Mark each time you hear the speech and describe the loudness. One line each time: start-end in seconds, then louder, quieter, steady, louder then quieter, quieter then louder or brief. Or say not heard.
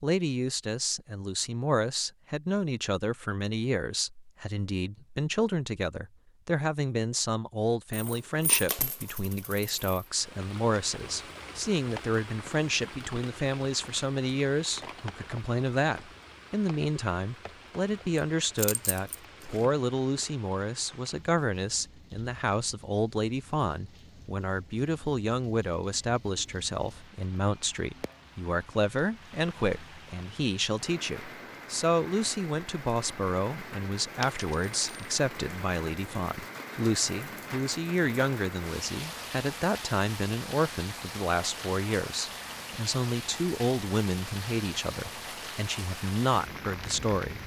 0.0-47.4 steady.